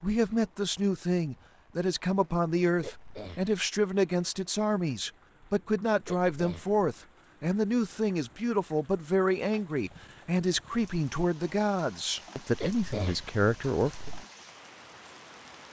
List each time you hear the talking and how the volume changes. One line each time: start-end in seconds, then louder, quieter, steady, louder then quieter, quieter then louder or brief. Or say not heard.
0.0-14.1 steady.